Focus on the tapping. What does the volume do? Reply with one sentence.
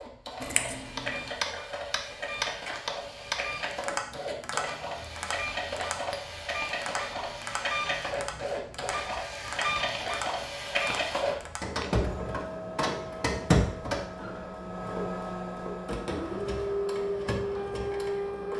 The loudness of the tapping goes down.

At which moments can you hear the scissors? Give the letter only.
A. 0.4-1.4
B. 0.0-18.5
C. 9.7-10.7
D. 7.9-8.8
A.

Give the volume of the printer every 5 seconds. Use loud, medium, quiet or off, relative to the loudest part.
medium, loud, loud, loud.